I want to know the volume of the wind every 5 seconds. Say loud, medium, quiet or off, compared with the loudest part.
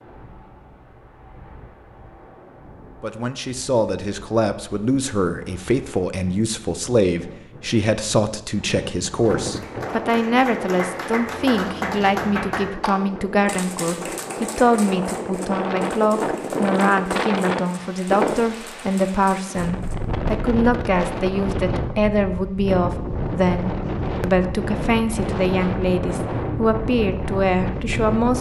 quiet, medium, medium, loud, loud, loud.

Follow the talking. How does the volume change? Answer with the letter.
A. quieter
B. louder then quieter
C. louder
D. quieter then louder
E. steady
E.